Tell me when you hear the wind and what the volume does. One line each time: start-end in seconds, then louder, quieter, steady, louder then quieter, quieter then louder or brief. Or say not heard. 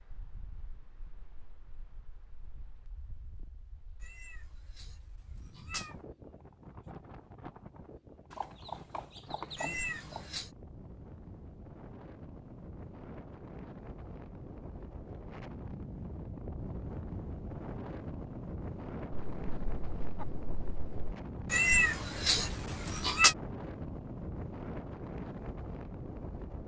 0.0-26.6 louder.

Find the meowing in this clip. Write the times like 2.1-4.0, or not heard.
4.0-5.0, 5.5-6.0, 9.6-10.5, 21.5-23.4.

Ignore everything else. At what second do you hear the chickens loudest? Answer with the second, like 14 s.
10 s.